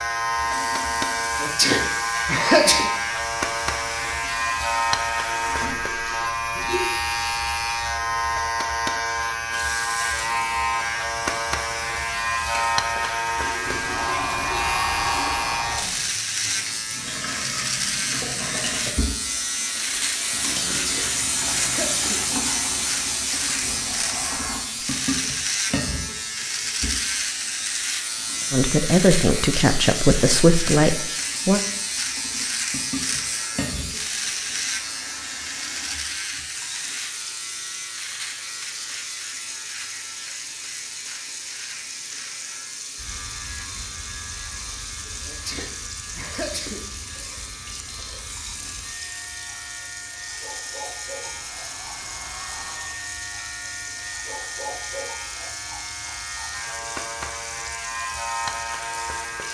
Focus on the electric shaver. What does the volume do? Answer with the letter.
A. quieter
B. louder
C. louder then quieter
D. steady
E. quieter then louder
A.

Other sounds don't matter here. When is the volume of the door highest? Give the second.
15 s.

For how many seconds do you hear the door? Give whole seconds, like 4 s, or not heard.
5 s.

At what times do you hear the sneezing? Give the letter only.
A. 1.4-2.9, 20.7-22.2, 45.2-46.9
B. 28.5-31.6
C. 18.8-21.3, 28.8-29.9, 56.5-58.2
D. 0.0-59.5
A.